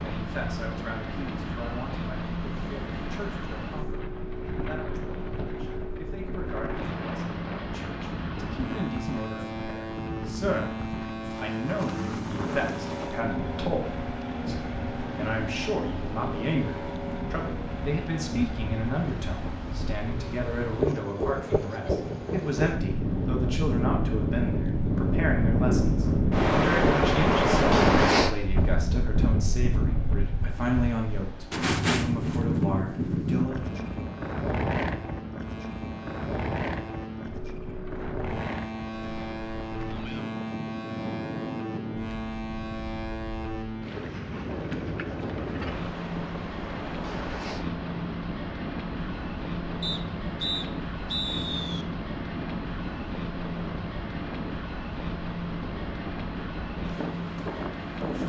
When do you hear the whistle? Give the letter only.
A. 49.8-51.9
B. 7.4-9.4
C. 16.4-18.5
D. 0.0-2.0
A.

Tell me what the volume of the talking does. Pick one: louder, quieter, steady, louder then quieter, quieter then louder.
louder.